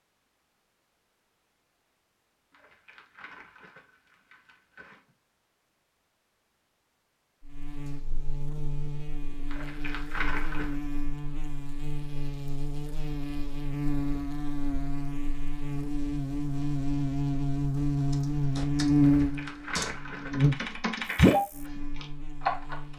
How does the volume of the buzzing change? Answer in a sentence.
The volume of the buzzing goes up, then down.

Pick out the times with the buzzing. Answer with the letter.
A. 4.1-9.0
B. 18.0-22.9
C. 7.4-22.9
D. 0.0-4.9
C.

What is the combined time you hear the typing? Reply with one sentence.
The typing can be heard for 5 seconds in total.